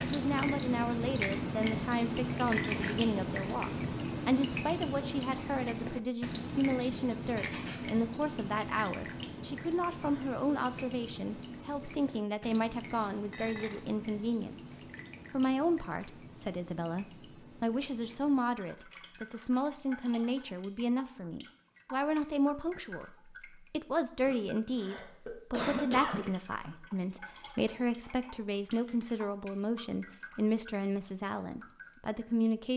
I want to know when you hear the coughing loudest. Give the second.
26 s.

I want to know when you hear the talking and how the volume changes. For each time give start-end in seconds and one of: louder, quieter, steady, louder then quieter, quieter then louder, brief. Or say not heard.
0.1-32.7 steady.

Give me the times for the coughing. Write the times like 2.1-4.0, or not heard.
9.9-10.8, 24.7-26.8.